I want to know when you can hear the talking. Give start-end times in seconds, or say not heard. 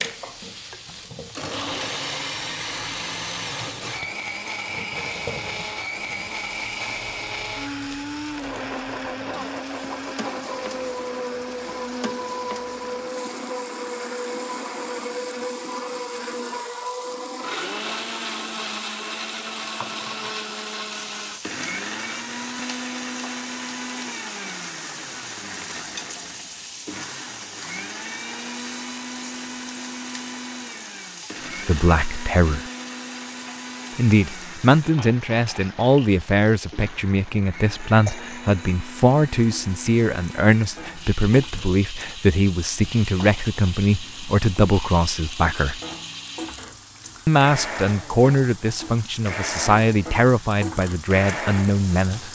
31.6-32.6, 34.0-45.8, 47.2-52.3.